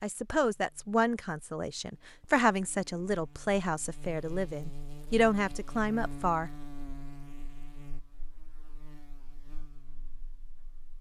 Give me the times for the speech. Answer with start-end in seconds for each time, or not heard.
0.0-6.5.